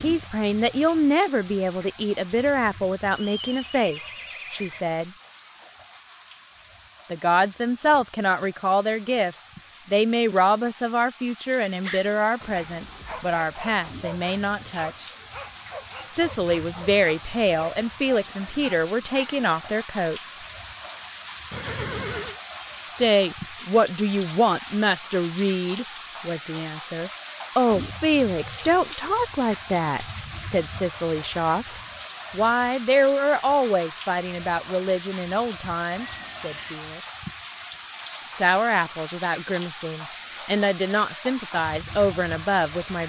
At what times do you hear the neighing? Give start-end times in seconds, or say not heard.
3.1-4.8, 21.5-22.4, 35.9-36.9.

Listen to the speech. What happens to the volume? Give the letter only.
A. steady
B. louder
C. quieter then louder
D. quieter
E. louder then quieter
A.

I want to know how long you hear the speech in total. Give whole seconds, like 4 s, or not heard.
36 s.